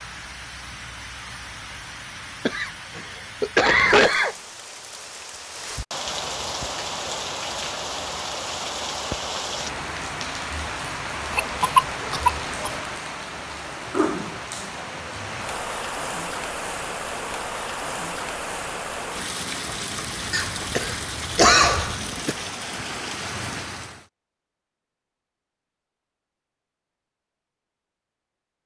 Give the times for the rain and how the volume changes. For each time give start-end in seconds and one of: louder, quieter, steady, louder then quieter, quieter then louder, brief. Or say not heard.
0.0-24.1 louder.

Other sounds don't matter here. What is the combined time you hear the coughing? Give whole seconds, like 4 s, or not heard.
5 s.